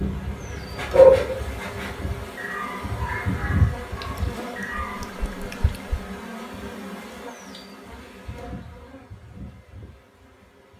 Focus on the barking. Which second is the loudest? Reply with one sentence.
The loudest moment of the barking is at 1 second.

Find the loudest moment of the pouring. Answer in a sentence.
The volume of the pouring peaks at 6 seconds.